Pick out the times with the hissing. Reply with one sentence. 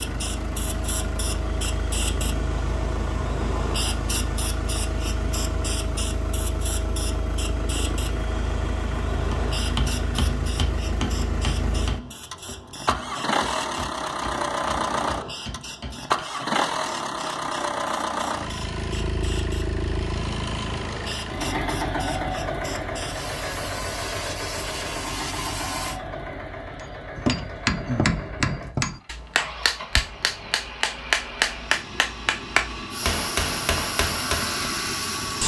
You can hear the hissing from 0.0 to 26.0 s and from 32.9 to 35.4 s.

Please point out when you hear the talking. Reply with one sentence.
The talking can't be heard in this clip.